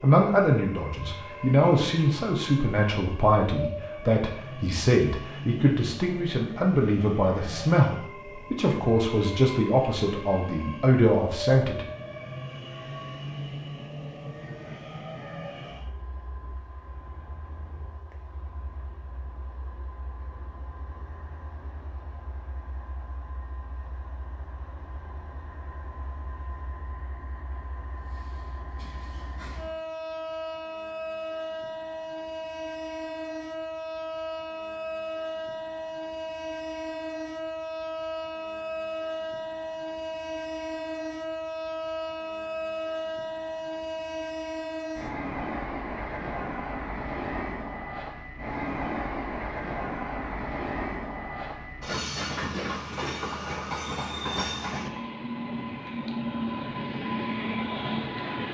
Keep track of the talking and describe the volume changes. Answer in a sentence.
The volume of the talking stays about the same.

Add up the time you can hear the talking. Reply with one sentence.
You can hear the talking for 12 seconds altogether.